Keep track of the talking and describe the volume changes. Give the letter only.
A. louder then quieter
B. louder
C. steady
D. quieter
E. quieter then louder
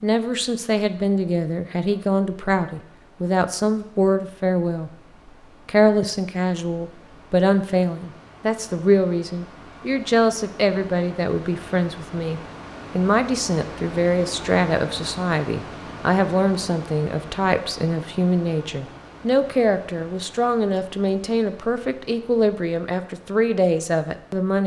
C.